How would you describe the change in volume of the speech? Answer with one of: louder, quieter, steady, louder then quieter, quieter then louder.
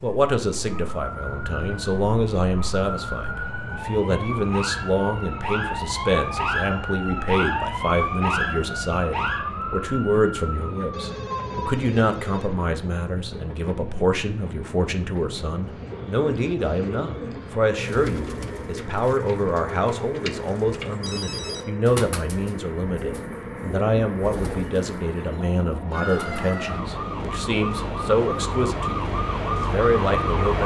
steady.